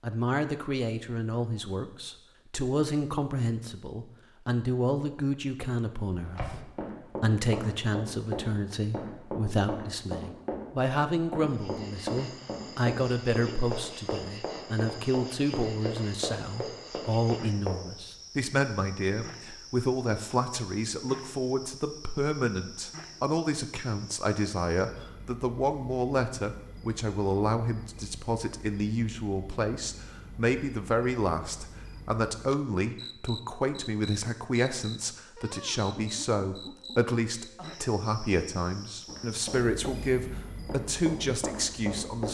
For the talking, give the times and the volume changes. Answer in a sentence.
You can hear the talking from 0.0 to 42.2 s, at a steady volume.